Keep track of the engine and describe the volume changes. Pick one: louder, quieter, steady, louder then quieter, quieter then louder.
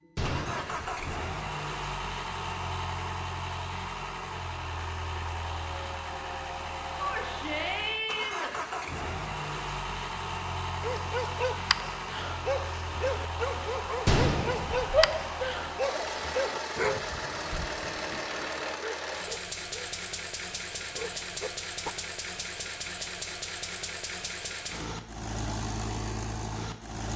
steady.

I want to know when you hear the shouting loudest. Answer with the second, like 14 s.
15 s.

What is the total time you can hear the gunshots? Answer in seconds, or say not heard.
2 s.